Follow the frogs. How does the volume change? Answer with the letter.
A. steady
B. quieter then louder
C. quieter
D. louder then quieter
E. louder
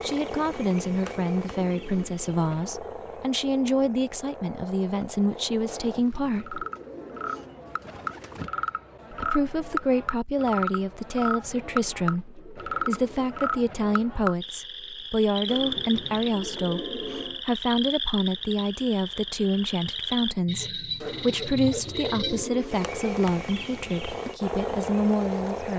E.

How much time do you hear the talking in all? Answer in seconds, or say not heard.
23 s.